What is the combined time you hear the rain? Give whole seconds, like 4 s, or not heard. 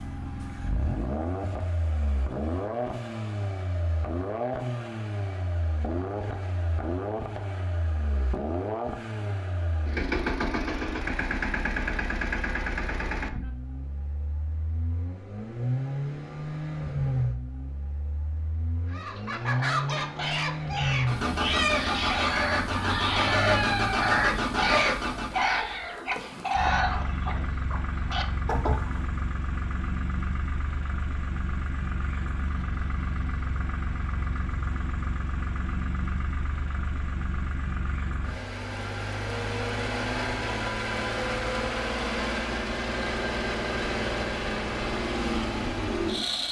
not heard.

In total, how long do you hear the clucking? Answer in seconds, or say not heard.
10 s.